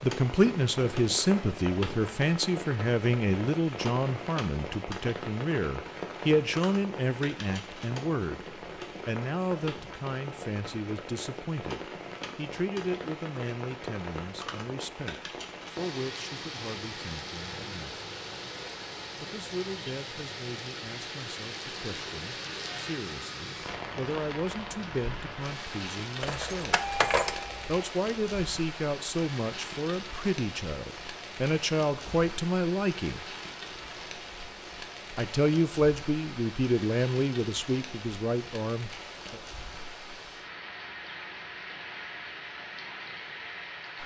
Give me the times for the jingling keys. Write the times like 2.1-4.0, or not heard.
26.2-27.8.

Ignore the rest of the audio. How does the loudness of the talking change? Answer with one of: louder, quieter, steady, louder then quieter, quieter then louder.
quieter then louder.